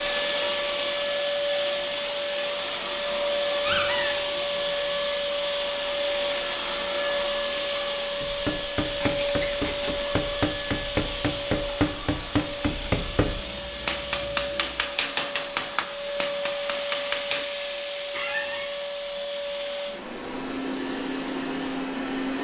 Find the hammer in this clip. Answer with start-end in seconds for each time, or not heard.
8.2-17.4.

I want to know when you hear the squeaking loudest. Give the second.
4 s.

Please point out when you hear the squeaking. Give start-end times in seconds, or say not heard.
3.6-4.2, 8.9-10.3, 18.1-18.7.